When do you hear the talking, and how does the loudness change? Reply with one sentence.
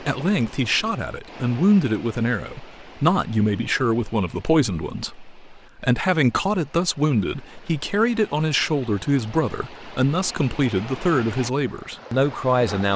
The talking can be heard from 0.0 to 12.9 s, at a steady volume.